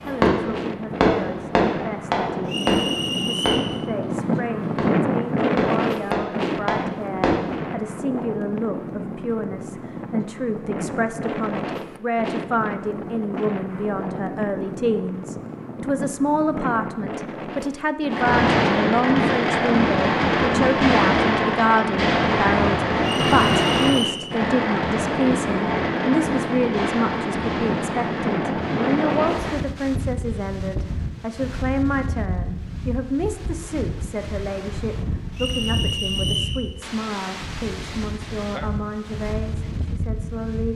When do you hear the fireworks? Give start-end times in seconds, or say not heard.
0.0-7.7, 18.1-29.6.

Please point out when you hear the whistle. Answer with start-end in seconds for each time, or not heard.
2.5-3.7, 23.0-24.2, 35.4-36.6.